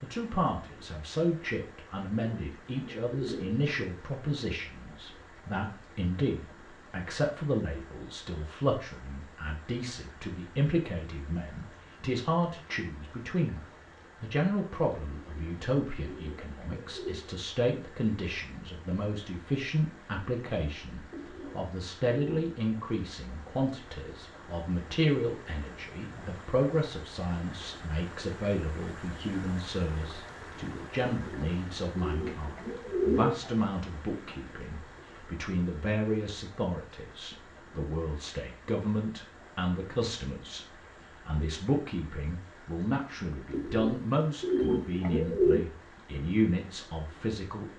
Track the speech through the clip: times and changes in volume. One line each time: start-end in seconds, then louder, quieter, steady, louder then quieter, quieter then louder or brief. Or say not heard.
0.0-47.7 steady.